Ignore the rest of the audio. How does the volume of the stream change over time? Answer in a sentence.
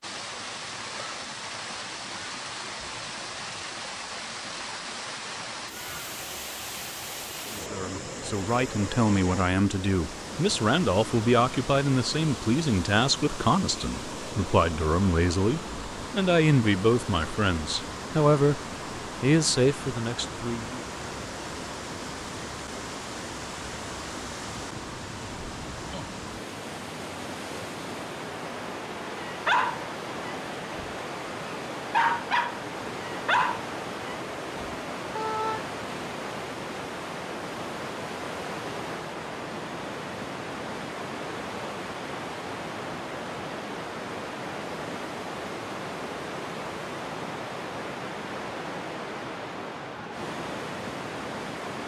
The volume of the stream stays about the same.